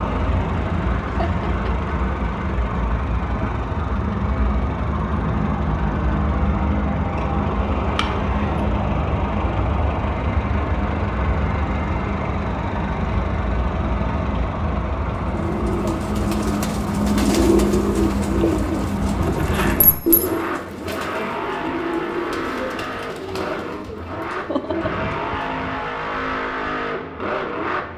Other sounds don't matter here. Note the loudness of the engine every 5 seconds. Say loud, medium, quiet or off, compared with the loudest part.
loud, loud, loud, loud, medium, loud.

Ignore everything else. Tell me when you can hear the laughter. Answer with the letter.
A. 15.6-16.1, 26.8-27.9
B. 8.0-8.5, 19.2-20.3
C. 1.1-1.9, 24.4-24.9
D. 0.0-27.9
C.